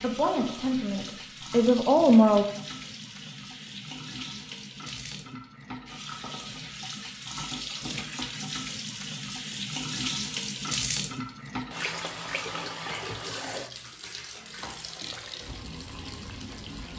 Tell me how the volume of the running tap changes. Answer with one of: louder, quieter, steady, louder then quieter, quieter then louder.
louder then quieter.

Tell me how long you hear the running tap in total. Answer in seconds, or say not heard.
17 s.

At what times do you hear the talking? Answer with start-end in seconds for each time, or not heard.
0.0-2.5.